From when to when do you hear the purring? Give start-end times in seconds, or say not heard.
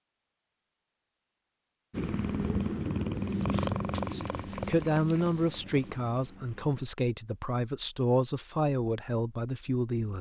1.9-6.8.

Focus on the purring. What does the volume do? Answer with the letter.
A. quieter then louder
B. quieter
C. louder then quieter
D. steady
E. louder
B.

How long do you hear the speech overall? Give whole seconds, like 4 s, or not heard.
6 s.